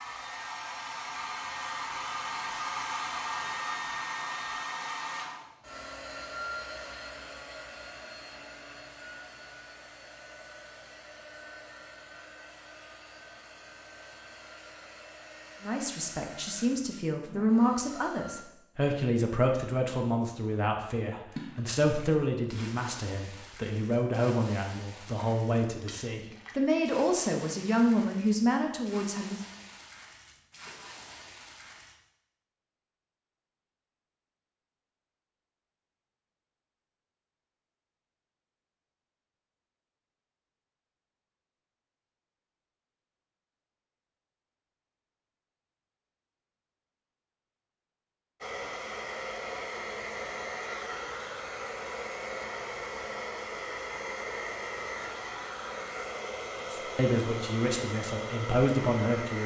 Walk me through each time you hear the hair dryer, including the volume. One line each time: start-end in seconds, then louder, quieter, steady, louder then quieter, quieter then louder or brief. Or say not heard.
0.0-18.4 quieter
48.4-59.4 steady.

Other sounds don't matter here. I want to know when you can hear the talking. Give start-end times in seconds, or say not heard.
15.6-29.4, 56.8-59.4.